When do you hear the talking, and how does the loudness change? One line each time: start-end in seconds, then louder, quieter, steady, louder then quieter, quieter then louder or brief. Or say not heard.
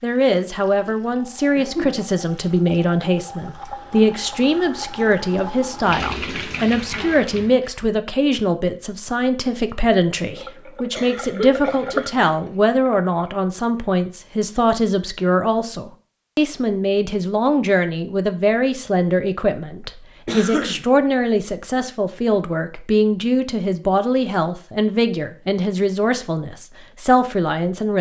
0.0-27.9 steady.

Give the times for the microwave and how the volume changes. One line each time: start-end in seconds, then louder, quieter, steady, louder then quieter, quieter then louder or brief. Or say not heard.
not heard.